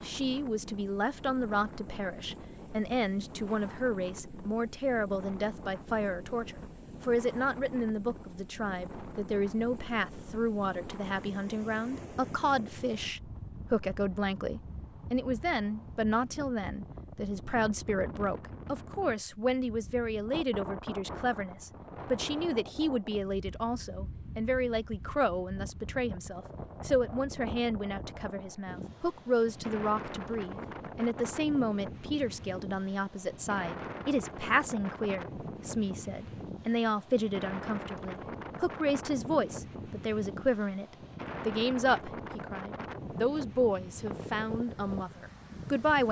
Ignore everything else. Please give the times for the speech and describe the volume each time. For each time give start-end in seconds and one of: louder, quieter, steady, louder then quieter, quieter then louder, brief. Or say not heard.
0.0-46.0 steady.